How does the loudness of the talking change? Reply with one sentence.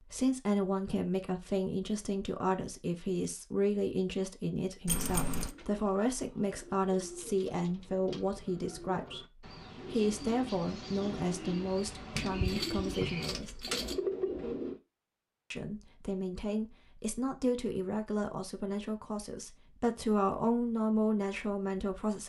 The loudness of the talking stays about the same.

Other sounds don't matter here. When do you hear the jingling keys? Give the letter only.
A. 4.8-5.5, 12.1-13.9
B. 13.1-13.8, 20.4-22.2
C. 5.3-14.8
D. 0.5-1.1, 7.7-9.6
A.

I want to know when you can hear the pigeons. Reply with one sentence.
The pigeons can be heard from 5.3 to 14.8 s.